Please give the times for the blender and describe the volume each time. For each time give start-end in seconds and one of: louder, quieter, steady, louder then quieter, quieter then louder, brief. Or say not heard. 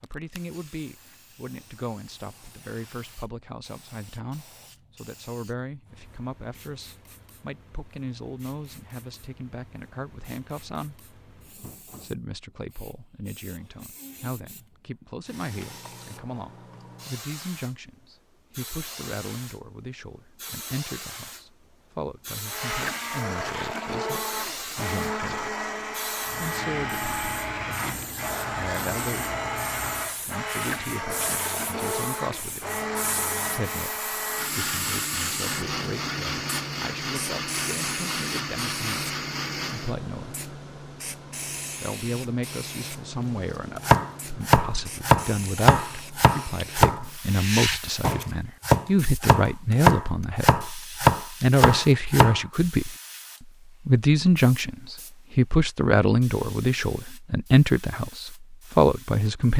22.4-40.0 steady.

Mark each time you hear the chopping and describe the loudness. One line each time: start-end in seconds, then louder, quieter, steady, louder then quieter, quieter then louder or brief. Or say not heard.
43.9-52.4 steady.